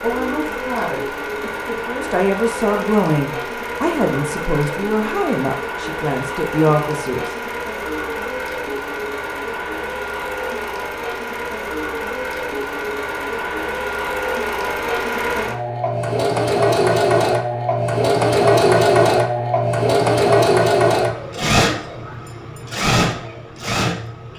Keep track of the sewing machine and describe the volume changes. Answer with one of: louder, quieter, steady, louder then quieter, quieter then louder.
louder.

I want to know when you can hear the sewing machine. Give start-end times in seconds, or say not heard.
0.0-24.3.